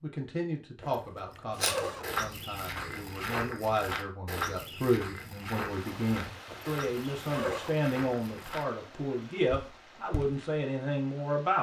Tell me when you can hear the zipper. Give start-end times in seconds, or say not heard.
0.8-2.1, 6.5-7.8.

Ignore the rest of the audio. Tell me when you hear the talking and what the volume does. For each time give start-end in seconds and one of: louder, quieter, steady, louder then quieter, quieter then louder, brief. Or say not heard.
0.0-11.5 louder.